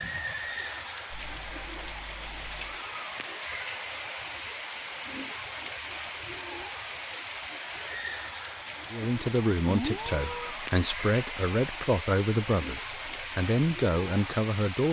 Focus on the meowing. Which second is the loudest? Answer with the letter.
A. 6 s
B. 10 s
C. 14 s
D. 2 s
B.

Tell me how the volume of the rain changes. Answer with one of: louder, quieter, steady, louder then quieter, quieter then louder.
steady.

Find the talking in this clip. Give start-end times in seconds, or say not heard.
8.9-14.8.